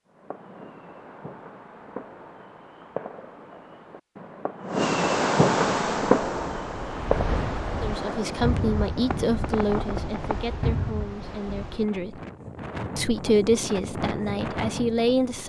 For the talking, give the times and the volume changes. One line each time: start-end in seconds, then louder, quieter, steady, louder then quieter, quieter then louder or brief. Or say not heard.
7.8-12.2 quieter
12.9-15.4 brief.